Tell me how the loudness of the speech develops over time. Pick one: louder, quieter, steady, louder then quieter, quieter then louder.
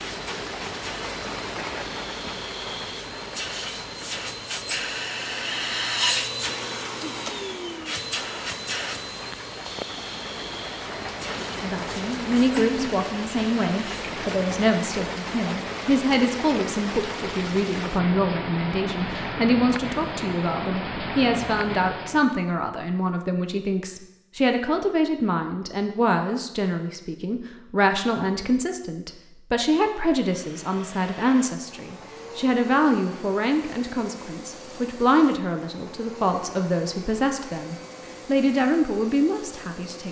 steady.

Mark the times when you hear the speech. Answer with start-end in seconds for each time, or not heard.
11.6-40.0.